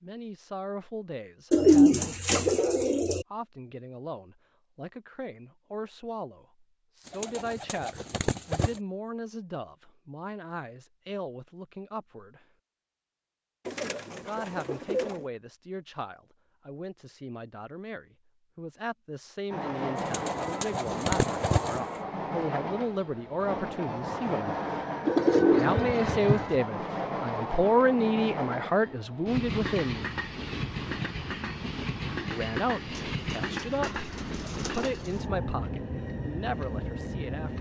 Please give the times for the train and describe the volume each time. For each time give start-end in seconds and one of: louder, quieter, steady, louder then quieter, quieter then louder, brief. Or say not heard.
19.5-37.5 steady.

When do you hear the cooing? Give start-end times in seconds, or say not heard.
1.5-3.2, 7.0-8.8, 13.7-15.2, 19.9-21.8, 25.1-26.6, 33.0-35.2.